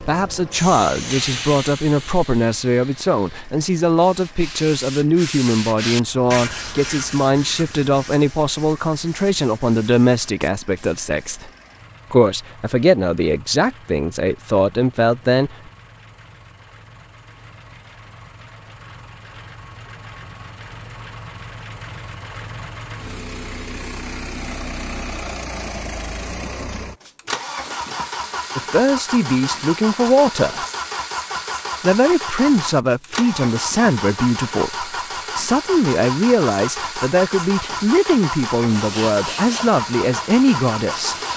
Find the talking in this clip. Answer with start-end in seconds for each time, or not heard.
0.0-11.5, 12.1-15.6, 28.6-30.6, 31.8-41.1.